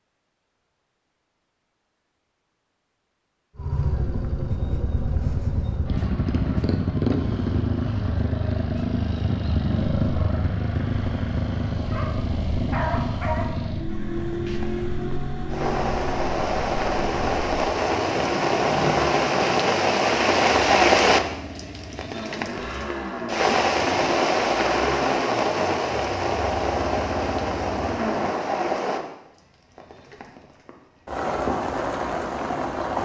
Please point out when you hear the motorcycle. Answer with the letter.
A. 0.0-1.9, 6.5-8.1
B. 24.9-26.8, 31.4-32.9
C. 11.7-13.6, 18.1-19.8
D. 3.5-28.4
D.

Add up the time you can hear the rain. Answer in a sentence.
The rain can be heard for 19 seconds in total.